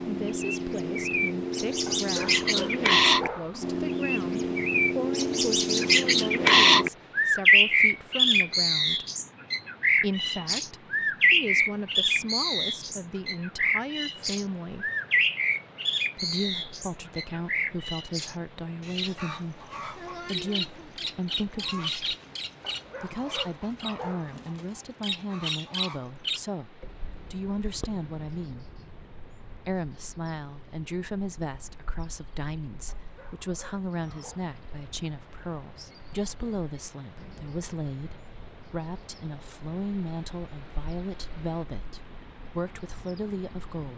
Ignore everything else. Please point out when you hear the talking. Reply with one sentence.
The talking can be heard from 0.1 to 9.1 s, from 10.0 to 14.9 s, from 16.1 to 22.1 s, from 23.0 to 28.6 s and from 29.6 to 43.9 s.